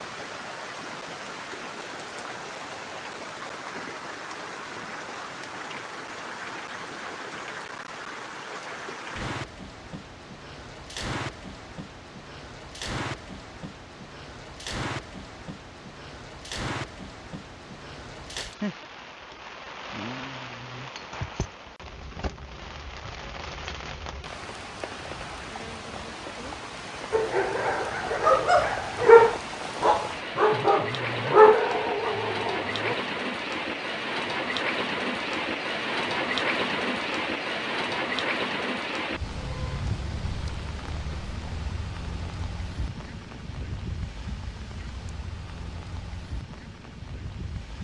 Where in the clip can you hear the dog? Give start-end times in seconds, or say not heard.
27.1-33.0.